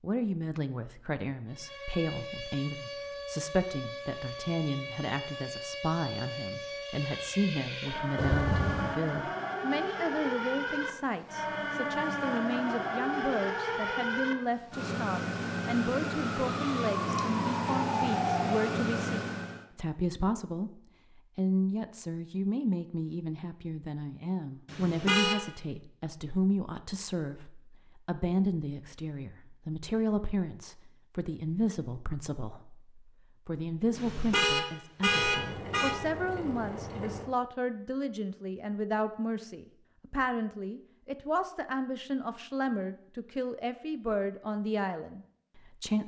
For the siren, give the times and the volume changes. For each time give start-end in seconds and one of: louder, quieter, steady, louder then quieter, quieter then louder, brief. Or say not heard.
1.5-19.6 louder.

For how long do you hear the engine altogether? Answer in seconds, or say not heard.
2 s.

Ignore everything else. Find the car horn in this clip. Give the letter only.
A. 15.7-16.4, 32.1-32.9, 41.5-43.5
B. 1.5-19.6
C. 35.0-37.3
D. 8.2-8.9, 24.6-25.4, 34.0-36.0
D.